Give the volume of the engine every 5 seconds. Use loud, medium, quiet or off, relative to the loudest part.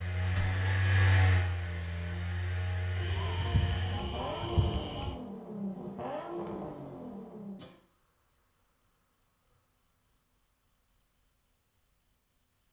loud, loud, off.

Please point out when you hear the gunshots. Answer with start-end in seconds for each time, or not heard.
0.3-0.8.